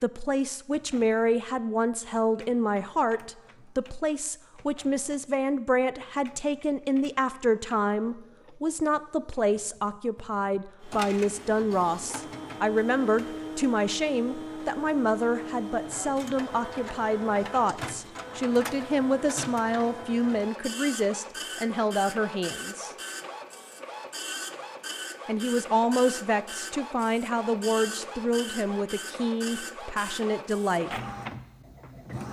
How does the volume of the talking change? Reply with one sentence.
The volume of the talking stays about the same.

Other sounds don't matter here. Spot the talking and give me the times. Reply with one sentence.
You can hear the talking from 0.0 to 22.9 s and from 25.2 to 30.9 s.